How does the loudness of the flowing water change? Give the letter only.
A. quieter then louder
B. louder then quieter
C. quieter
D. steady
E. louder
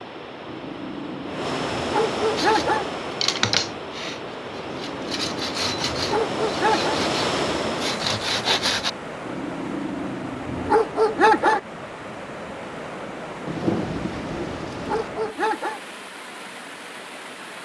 C.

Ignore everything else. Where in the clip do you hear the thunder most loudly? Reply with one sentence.
The volume of the thunder peaks at 14 seconds.